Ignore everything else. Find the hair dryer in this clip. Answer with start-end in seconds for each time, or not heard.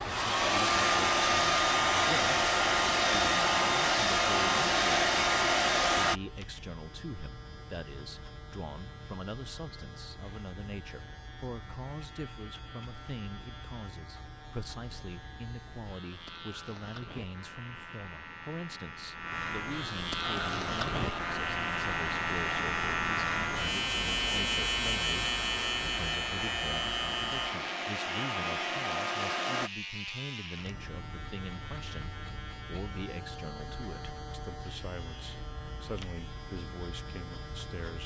0.0-6.2, 20.2-29.7.